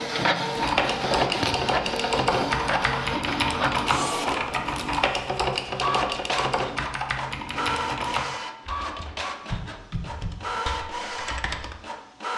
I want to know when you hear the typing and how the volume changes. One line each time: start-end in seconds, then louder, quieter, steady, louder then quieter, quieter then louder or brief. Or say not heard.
0.6-11.8 quieter.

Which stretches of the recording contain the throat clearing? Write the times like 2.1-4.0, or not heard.
not heard.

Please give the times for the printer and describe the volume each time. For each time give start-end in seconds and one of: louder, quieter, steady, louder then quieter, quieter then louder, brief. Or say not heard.
0.0-12.3 quieter.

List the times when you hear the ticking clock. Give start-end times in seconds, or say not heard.
not heard.